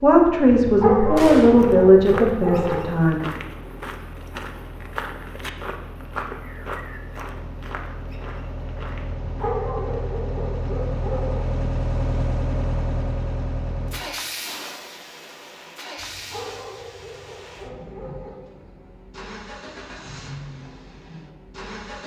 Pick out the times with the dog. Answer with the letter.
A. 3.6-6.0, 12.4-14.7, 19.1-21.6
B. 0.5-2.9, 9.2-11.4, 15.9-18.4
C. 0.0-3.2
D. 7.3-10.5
B.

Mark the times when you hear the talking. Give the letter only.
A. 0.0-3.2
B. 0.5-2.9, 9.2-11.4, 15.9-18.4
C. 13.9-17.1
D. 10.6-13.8
A.